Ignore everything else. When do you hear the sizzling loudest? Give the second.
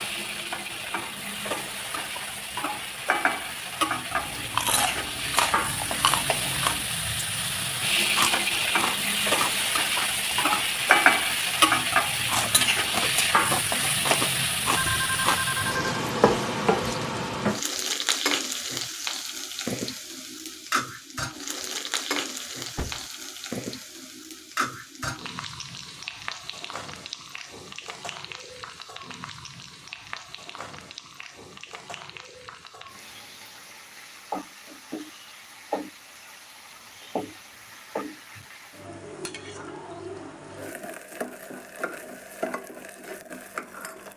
11 s.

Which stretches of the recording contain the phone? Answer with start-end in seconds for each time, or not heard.
14.8-16.0.